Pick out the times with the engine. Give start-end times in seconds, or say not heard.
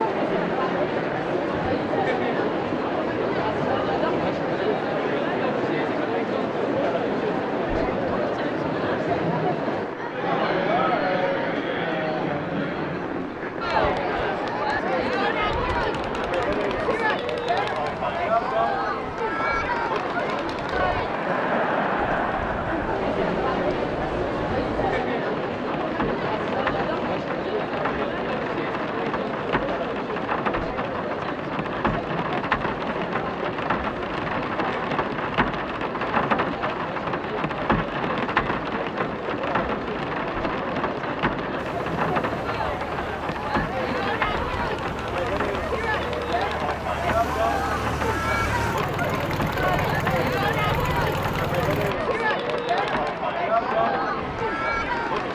41.5-52.0.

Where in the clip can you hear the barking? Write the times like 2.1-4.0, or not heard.
not heard.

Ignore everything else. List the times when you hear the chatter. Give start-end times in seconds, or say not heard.
0.0-55.2.